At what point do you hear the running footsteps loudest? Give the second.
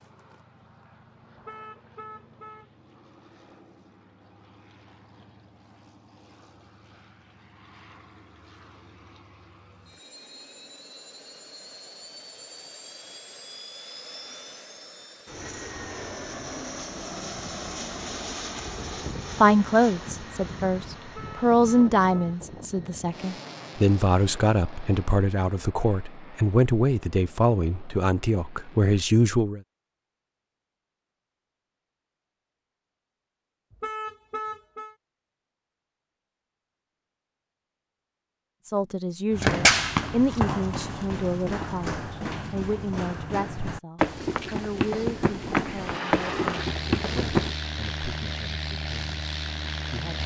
40 s.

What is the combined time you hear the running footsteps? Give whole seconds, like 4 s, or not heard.
8 s.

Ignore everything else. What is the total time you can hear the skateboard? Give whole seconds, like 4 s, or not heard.
not heard.